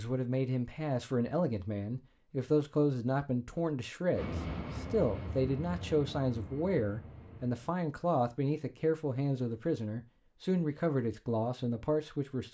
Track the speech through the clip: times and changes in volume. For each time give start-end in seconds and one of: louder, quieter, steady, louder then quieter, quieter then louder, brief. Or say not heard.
0.0-12.4 steady.